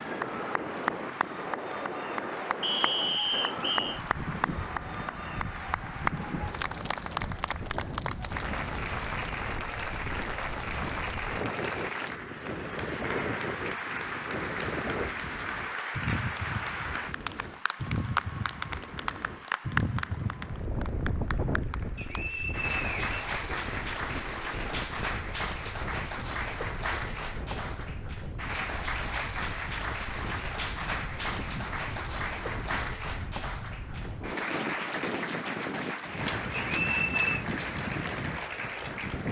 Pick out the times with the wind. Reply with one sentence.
You can hear the wind from 0.0 to 39.2 s.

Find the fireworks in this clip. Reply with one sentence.
The fireworks can't be heard in this clip.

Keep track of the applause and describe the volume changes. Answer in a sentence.
The loudness of the applause stays about the same.